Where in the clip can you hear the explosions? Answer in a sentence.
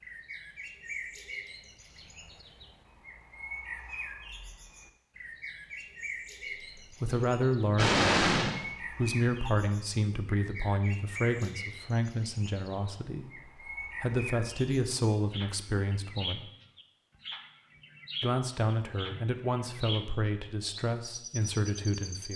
The explosions can be heard from 7.8 to 8.6 s.